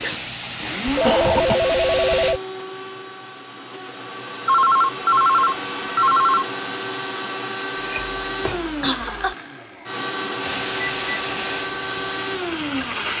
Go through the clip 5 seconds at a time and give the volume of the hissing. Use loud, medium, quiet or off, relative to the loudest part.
loud, off, loud.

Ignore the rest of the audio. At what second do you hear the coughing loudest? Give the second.
1 s.